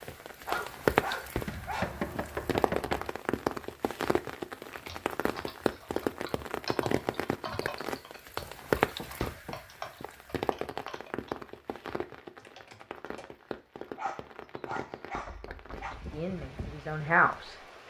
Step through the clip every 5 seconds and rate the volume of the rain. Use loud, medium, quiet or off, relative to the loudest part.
loud, loud, medium, quiet.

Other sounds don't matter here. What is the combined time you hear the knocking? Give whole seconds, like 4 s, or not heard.
3 s.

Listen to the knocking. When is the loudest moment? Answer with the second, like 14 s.
2 s.